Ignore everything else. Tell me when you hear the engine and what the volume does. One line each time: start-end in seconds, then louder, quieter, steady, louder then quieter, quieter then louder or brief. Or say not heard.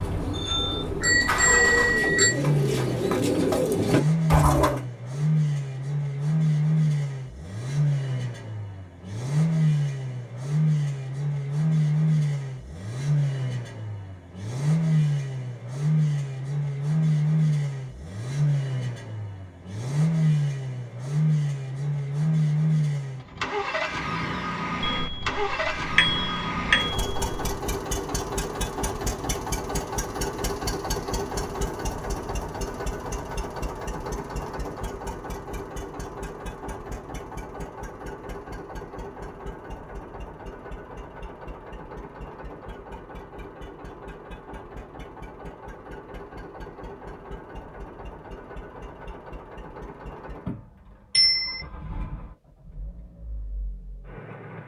0.0-54.6 quieter.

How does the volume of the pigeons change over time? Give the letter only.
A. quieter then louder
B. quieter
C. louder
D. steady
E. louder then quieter
C.